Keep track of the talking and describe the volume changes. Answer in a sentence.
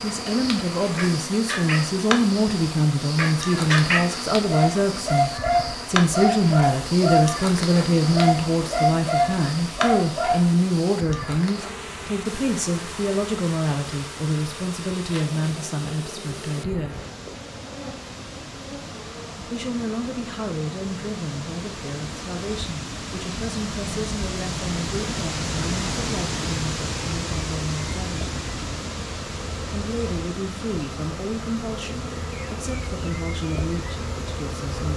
The loudness of the talking goes down.